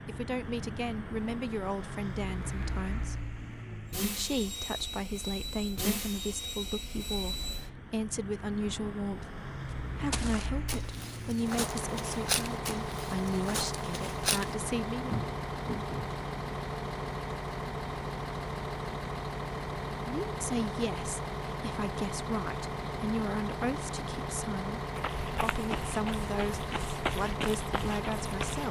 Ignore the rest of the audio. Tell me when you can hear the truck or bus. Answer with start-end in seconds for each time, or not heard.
0.0-28.6.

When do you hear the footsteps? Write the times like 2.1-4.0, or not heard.
10.1-16.0, 24.9-28.6.